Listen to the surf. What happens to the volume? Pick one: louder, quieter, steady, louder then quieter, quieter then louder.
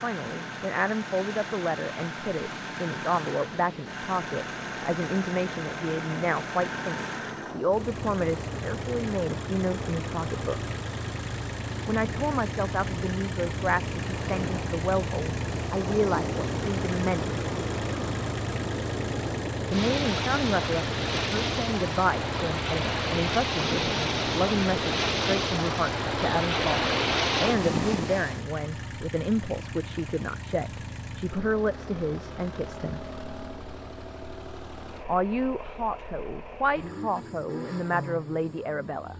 louder.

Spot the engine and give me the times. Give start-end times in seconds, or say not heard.
0.0-39.1.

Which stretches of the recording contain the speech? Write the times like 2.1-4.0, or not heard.
0.0-10.6, 11.8-17.4, 19.7-33.0, 35.0-39.1.